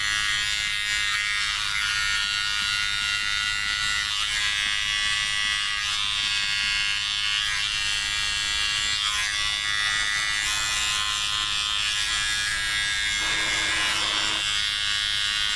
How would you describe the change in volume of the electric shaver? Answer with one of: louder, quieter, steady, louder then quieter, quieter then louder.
steady.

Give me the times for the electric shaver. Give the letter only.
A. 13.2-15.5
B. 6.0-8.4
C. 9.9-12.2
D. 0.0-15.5
D.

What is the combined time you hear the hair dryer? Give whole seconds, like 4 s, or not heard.
2 s.